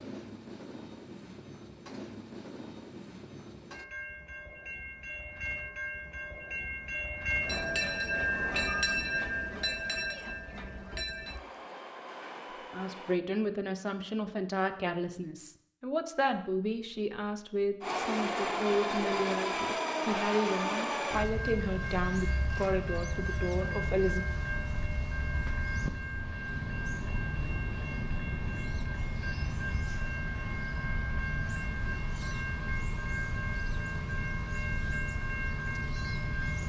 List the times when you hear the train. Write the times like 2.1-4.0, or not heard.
0.0-13.2, 17.8-36.6.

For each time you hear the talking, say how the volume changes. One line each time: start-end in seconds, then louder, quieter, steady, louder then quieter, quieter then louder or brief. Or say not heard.
12.7-24.2 steady.